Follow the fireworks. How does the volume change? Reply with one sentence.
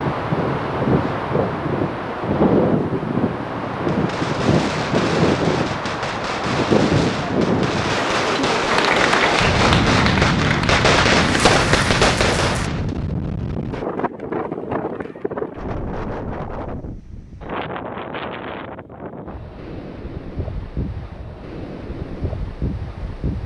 The volume of the fireworks goes up.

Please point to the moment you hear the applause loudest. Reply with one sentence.
The volume of the applause peaks at 9 seconds.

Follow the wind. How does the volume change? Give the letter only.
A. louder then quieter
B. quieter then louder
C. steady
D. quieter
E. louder
D.